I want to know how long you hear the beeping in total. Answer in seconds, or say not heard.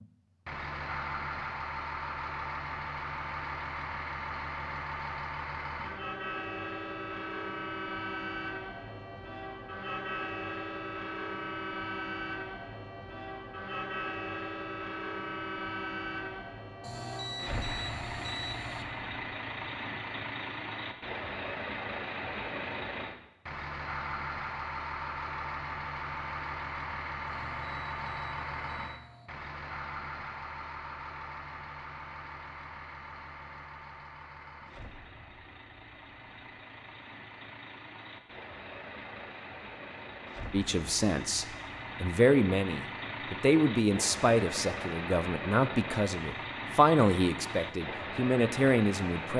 4 s.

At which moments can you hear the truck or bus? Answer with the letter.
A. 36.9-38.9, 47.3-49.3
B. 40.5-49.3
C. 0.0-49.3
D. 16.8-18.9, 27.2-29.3
C.